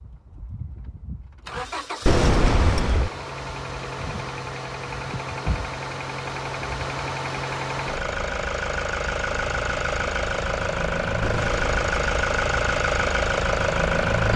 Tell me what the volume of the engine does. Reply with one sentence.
The volume of the engine goes up.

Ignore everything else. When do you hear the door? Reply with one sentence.
You can hear the door from 2.0 to 3.1 s and from 11.2 to 12.1 s.